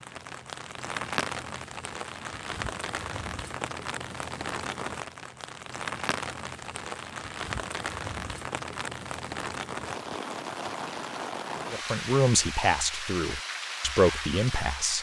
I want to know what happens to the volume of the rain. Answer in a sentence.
The volume of the rain stays about the same.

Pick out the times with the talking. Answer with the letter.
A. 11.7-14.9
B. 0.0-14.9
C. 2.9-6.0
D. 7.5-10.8
A.